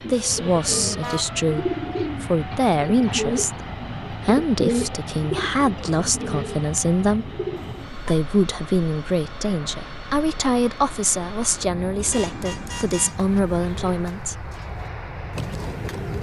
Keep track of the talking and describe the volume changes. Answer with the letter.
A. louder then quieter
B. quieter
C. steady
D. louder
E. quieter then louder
C.